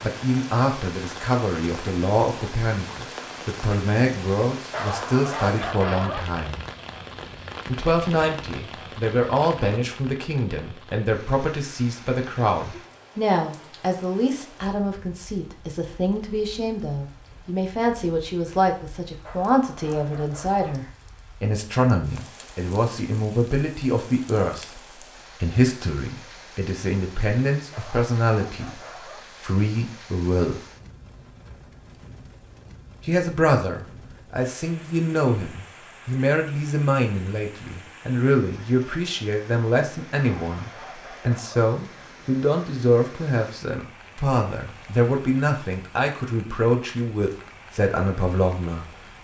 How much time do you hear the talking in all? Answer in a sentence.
The talking can be heard for 46 seconds in total.